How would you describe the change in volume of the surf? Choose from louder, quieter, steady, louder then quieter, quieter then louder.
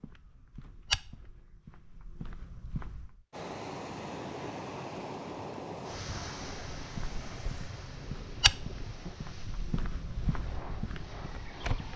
quieter.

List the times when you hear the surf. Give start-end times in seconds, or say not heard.
3.3-11.9.